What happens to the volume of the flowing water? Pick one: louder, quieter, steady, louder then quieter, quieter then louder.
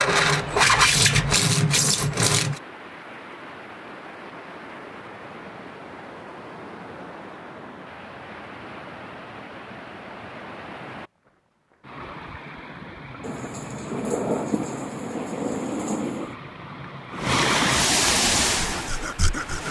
louder.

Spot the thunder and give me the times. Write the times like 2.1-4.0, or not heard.
13.2-16.4.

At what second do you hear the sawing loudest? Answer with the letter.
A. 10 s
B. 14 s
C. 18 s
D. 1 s
D.